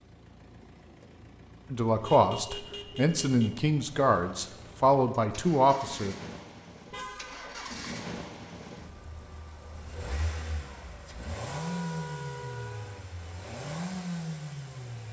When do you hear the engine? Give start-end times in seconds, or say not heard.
0.0-15.0.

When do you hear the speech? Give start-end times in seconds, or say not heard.
1.7-6.2.